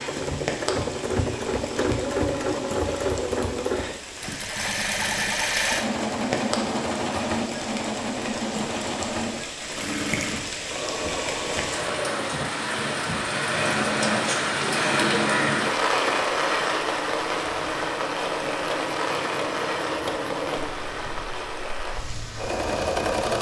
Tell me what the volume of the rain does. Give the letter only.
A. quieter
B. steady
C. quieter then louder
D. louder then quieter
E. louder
D.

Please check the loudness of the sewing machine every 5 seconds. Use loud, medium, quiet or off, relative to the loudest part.
loud, loud, medium, medium, loud.